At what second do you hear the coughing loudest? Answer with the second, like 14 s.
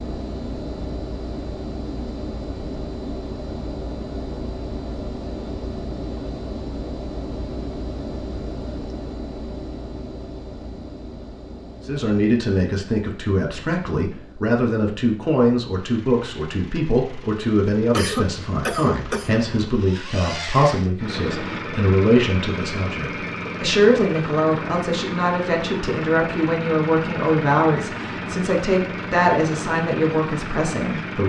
18 s.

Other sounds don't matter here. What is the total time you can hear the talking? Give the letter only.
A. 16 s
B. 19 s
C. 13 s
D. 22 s
B.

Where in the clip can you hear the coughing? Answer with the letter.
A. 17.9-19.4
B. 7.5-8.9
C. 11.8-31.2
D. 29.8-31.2
A.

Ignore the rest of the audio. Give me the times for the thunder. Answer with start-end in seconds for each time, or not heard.
not heard.